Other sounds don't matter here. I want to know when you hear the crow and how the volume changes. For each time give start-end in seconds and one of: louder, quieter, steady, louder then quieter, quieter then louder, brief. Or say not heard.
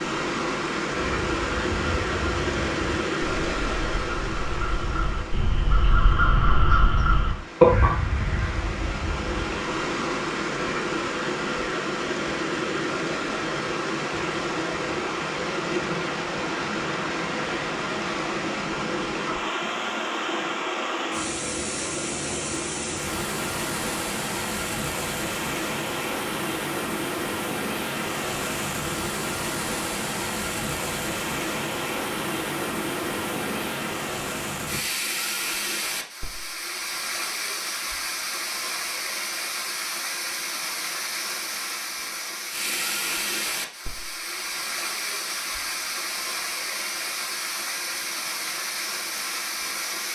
1.0-9.5 louder.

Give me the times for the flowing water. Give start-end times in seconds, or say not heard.
0.0-50.1.